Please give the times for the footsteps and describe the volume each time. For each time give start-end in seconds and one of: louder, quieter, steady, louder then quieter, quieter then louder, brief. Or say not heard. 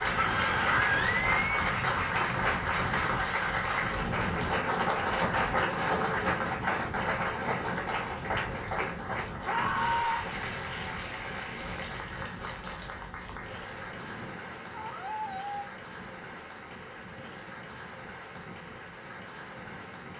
not heard.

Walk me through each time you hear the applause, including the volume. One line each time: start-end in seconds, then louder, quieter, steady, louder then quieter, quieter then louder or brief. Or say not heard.
0.0-20.1 quieter.